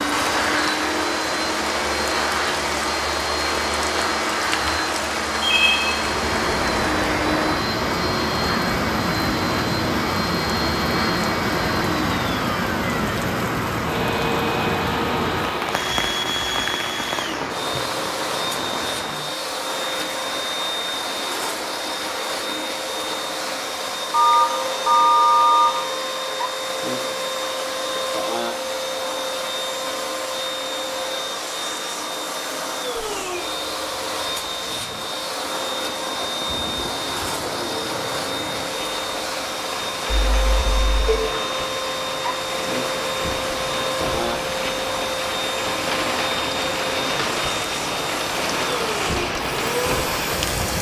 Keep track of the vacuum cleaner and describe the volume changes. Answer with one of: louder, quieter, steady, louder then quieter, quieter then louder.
steady.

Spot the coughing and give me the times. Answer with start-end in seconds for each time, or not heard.
not heard.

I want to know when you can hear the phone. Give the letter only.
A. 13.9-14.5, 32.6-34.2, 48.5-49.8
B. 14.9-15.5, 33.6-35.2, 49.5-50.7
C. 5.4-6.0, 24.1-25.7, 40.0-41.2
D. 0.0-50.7
C.